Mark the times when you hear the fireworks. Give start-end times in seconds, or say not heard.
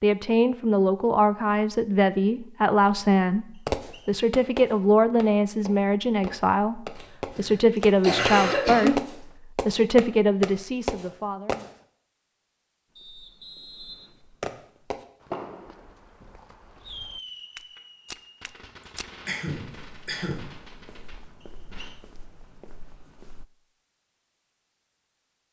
3.6-11.7, 14.4-21.9.